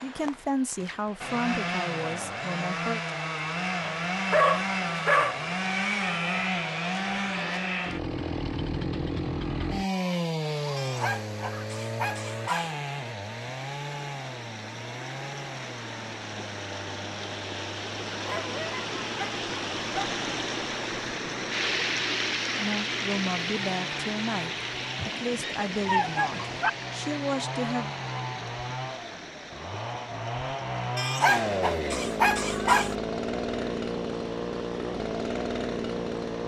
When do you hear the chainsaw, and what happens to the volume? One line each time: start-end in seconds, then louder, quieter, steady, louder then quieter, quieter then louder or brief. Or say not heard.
0.0-36.4 quieter then louder.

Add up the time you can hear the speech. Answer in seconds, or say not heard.
8 s.